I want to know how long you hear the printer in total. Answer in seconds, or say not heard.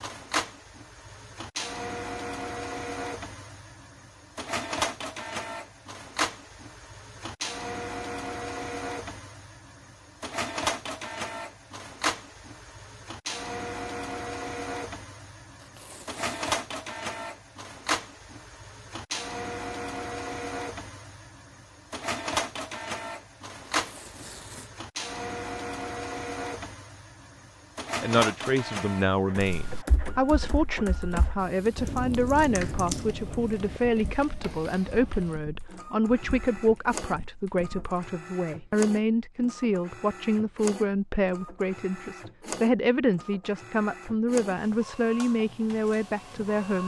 47 s.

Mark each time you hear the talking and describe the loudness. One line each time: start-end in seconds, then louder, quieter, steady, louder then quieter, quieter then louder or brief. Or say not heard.
28.0-46.8 steady.